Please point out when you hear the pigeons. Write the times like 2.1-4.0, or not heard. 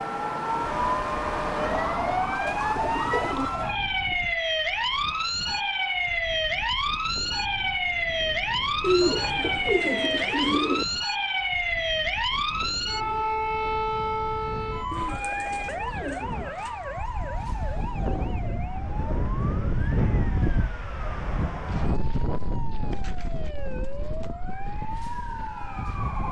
2.5-3.5, 8.8-10.8, 14.9-16.8, 21.6-24.3.